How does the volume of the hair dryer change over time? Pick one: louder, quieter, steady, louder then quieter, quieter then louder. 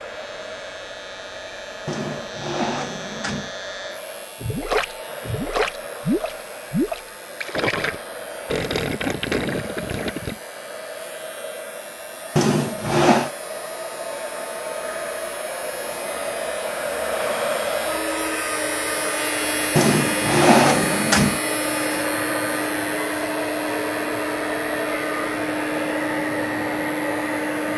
louder.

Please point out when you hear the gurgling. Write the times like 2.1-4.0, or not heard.
4.4-10.3.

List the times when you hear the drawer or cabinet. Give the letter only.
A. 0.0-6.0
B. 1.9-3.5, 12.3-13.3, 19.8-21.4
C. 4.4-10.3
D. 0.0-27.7
B.